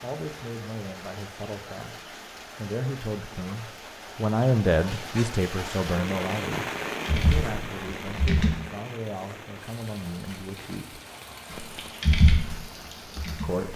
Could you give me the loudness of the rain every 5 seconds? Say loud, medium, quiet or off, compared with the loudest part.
medium, loud, medium.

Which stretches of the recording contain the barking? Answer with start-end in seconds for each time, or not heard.
not heard.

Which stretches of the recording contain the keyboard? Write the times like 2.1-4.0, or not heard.
7.0-8.6, 11.5-13.7.